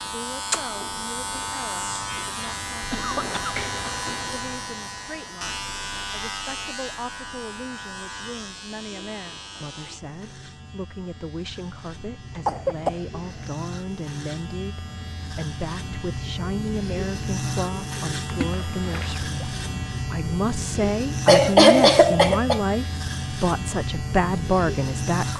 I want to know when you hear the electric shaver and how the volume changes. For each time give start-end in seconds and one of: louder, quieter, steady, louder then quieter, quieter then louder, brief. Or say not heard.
0.0-25.3 quieter then louder.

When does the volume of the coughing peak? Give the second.
22 s.